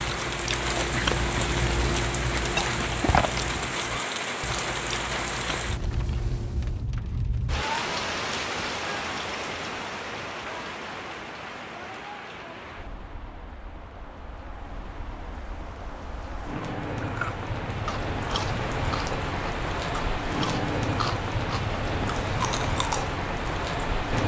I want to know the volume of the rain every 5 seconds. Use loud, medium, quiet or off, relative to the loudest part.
loud, loud, medium, loud, loud.